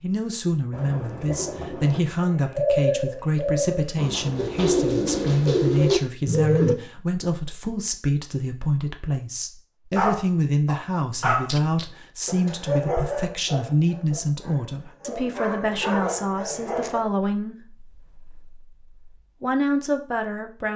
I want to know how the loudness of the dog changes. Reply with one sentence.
The loudness of the dog goes down, then up.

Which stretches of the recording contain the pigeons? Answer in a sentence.
You can hear the pigeons from 0.7 to 6.8 s.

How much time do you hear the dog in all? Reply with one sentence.
You can hear the dog for 7 seconds altogether.